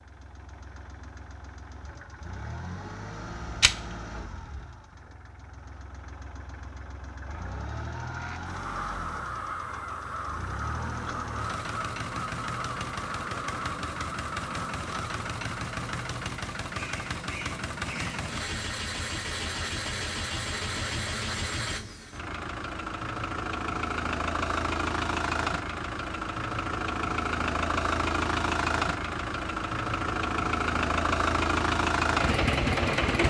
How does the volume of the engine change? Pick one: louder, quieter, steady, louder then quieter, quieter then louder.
louder.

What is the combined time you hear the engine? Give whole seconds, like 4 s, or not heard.
33 s.